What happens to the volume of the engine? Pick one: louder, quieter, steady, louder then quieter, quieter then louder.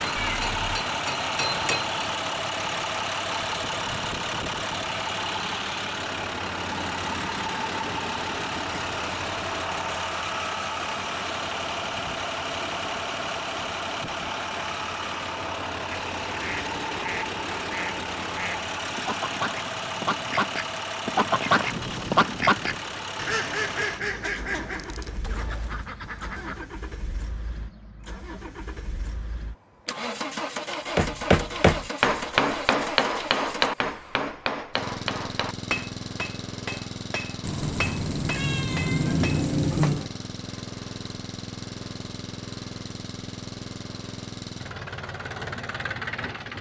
quieter.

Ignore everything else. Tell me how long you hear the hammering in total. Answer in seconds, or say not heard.
11 s.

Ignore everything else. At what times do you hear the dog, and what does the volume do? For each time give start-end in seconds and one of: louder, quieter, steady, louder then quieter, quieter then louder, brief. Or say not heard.
not heard.